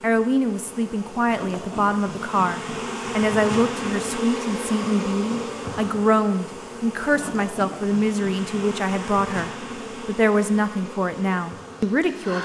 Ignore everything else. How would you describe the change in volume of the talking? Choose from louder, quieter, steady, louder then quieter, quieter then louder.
steady.